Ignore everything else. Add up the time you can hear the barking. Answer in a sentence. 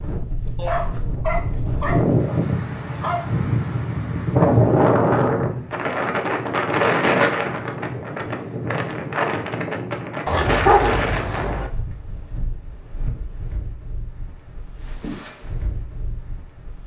The barking can be heard for 4 seconds in total.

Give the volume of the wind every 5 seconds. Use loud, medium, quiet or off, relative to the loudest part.
loud, loud, medium, quiet.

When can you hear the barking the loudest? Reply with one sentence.
The volume of the barking peaks at 11 seconds.